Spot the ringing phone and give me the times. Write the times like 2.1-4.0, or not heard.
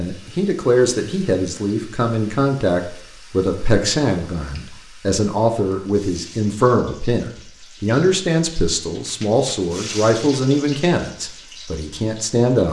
not heard.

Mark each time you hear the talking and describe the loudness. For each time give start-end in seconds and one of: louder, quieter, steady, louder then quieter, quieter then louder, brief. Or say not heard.
0.0-12.6 steady.